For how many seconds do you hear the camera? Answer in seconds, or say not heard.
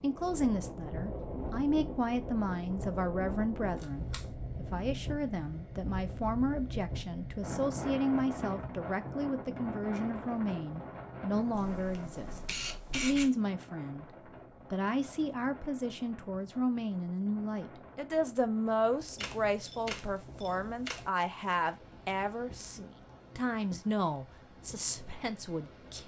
4 s.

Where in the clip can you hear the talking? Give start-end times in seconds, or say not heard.
0.0-14.1, 14.7-26.0.